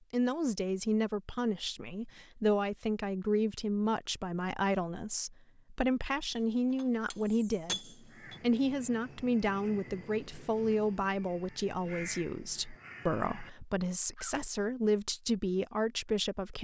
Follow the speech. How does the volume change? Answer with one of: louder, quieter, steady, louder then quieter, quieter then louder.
steady.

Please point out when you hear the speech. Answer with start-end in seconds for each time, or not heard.
0.1-16.5.